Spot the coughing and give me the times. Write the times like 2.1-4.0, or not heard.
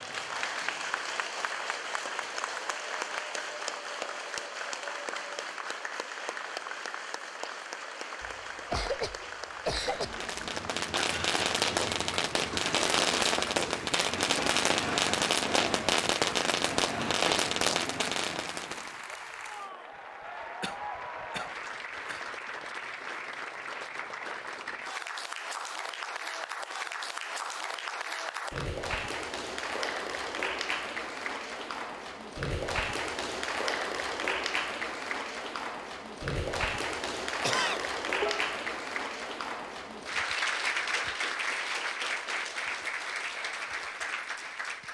8.2-10.2, 20.6-22.2, 37.4-38.5.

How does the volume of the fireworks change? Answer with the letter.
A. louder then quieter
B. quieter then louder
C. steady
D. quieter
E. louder
C.